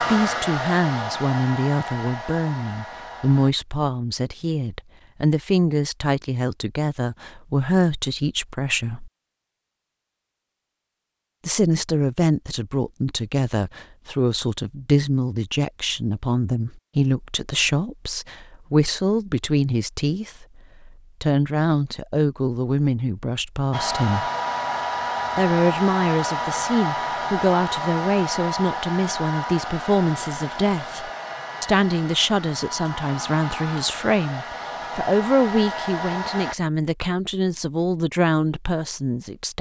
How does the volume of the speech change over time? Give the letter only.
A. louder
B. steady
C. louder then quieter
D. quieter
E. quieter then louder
B.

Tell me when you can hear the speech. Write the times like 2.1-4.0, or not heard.
0.0-9.1, 11.4-24.2, 25.4-39.5.